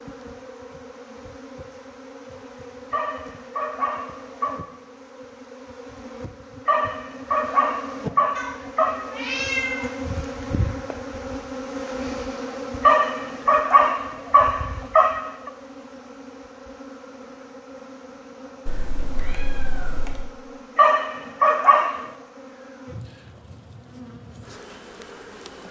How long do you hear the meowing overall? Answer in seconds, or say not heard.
3 s.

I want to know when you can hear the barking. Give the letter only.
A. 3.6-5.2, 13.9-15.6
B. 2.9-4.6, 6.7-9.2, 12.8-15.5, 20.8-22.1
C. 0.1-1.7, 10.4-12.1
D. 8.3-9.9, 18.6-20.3
B.